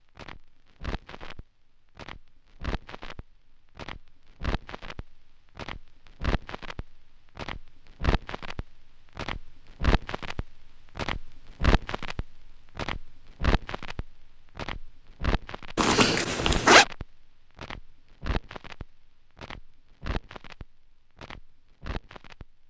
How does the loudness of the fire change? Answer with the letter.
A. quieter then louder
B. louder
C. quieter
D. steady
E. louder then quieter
E.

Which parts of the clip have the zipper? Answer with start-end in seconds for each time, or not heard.
15.8-16.9.